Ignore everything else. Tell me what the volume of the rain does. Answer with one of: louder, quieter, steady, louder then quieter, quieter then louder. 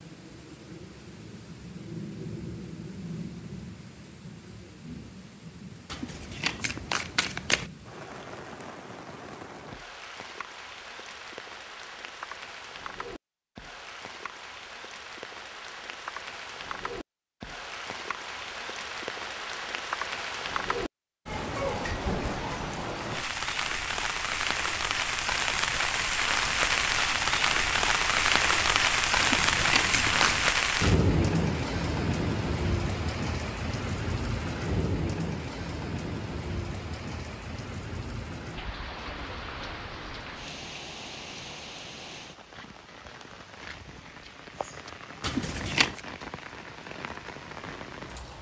louder then quieter.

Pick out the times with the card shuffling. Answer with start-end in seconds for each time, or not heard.
5.9-7.7, 29.1-30.5, 45.2-46.0.